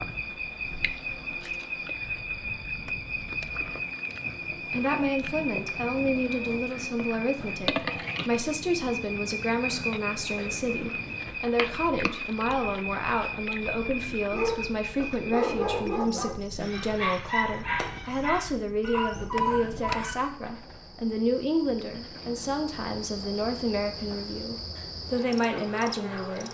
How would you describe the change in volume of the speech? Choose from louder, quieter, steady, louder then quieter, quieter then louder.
steady.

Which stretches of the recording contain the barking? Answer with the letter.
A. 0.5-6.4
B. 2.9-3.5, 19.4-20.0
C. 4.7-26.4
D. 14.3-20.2
D.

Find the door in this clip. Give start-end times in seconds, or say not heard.
2.9-3.5, 19.4-20.0.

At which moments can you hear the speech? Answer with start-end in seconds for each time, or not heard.
4.7-26.4.